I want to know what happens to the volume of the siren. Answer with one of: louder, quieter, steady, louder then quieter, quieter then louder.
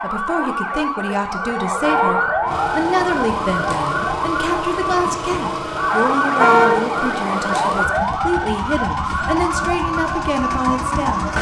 steady.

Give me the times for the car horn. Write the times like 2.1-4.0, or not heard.
1.8-2.8, 6.4-7.0.